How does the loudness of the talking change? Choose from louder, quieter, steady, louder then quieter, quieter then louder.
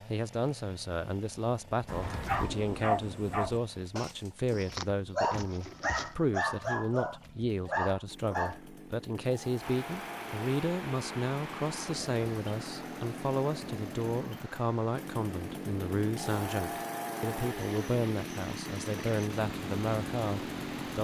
steady.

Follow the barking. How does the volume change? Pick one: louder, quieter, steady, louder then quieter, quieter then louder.
quieter then louder.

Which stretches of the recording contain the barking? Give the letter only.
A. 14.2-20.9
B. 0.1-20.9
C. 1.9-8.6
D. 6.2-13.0
C.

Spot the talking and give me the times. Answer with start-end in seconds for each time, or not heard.
0.1-20.9.